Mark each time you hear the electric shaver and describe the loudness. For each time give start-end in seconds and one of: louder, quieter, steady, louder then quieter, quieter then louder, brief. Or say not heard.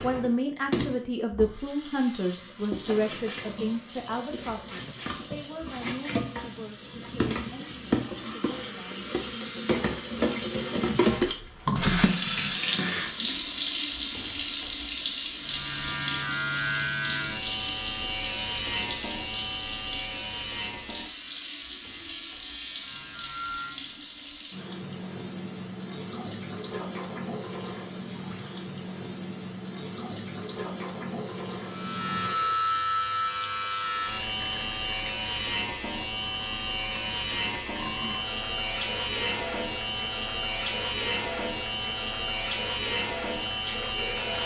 15.4-24.1 quieter
31.6-44.4 steady.